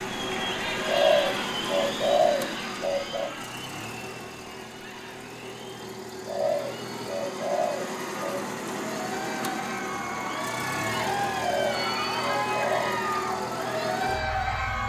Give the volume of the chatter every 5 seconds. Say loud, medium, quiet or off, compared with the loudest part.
medium, medium, loud.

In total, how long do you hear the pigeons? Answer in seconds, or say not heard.
6 s.